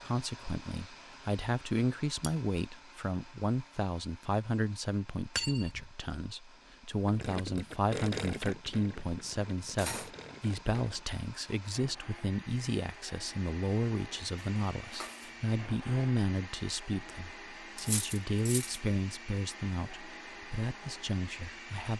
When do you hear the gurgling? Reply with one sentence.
The gurgling can be heard from 7.0 to 11.1 s.